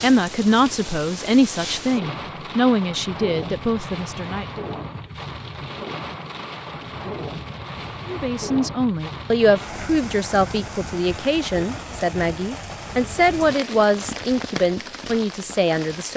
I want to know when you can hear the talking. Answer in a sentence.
The talking can be heard from 0.0 to 4.5 s and from 8.1 to 16.1 s.